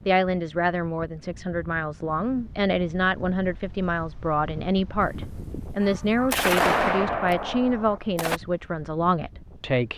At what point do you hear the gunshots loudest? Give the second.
7 s.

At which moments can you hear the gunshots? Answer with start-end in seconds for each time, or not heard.
5.0-8.4.